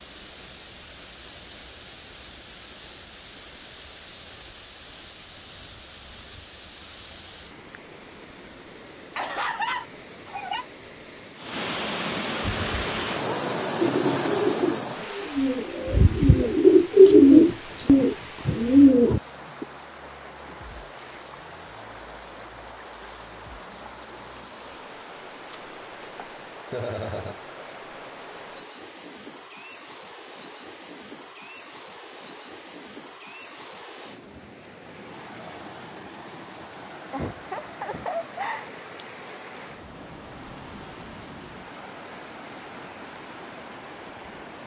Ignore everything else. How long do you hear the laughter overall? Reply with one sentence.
You can hear the laughter for 4 seconds altogether.